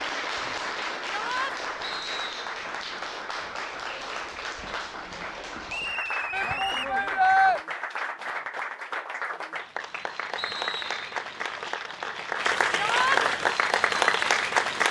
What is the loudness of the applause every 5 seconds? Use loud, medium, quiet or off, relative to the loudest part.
medium, medium, loud.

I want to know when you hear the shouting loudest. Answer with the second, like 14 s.
7 s.